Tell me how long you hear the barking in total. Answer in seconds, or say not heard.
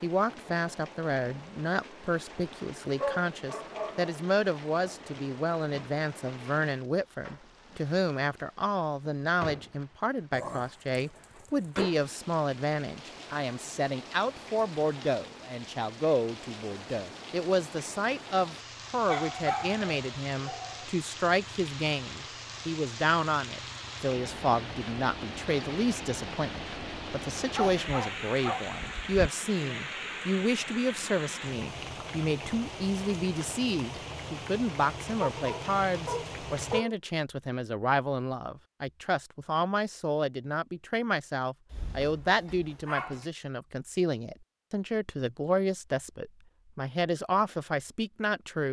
11 s.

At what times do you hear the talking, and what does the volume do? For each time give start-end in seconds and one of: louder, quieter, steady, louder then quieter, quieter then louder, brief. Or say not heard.
0.0-48.6 steady.